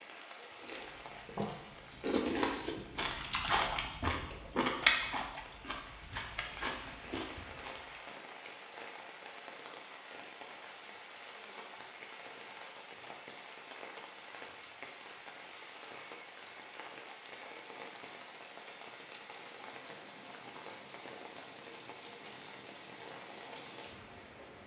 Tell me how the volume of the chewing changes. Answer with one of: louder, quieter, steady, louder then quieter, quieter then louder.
louder then quieter.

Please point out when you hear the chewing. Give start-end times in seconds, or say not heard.
0.6-8.0.